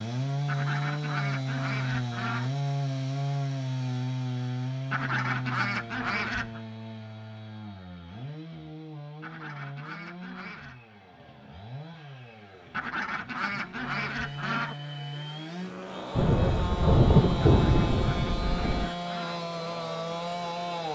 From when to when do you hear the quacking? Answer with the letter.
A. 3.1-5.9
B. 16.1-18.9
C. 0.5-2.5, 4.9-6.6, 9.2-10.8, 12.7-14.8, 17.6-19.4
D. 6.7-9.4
C.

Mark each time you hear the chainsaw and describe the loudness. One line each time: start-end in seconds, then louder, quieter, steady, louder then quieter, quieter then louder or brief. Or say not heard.
0.0-20.9 quieter then louder.